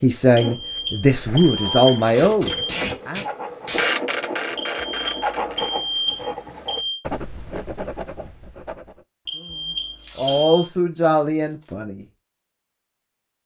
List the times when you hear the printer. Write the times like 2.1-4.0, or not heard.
0.2-5.8.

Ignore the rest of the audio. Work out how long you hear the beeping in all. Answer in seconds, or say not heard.
6 s.